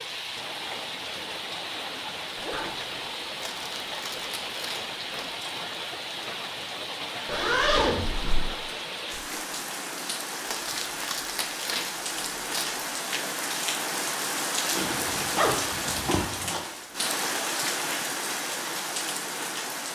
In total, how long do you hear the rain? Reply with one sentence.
The rain can be heard for 20 seconds in total.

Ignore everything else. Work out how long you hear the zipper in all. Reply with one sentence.
The zipper can be heard for 4 seconds in total.